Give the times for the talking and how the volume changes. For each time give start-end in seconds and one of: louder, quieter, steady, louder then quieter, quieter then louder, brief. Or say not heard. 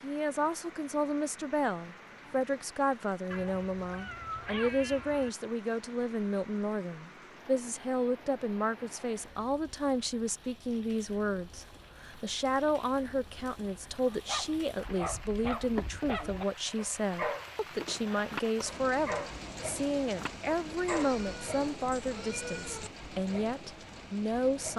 0.0-24.7 steady.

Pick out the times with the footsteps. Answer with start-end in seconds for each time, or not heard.
not heard.